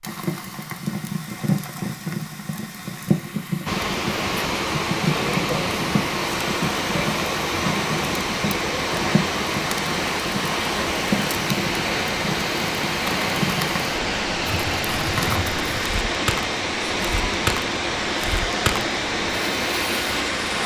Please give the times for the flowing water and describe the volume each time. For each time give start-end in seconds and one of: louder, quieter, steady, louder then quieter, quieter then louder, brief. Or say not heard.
3.6-20.6 steady.